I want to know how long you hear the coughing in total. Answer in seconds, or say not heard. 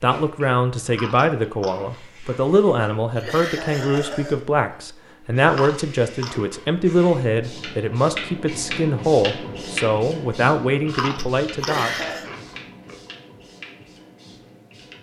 2 s.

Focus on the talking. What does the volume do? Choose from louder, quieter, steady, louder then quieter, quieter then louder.
steady.